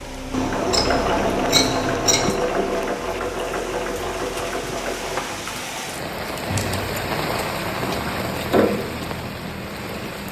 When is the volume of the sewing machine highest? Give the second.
1 s.